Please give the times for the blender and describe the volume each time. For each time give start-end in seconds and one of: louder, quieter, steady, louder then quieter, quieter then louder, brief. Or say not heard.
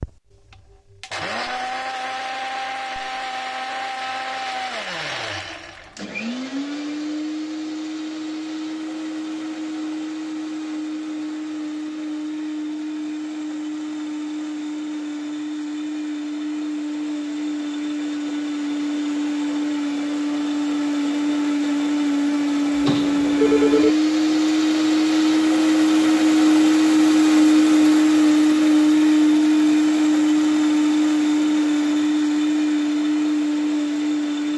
0.0-34.5 louder.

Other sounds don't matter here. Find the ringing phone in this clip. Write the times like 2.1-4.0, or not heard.
22.8-23.9.